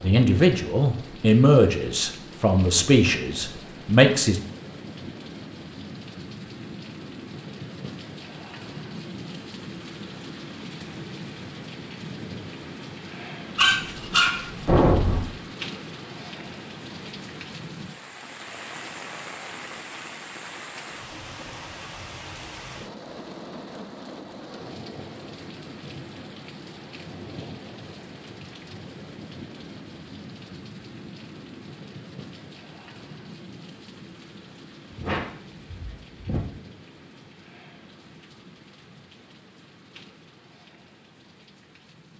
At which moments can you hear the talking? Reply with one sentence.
You can hear the talking from 0.0 to 4.4 s.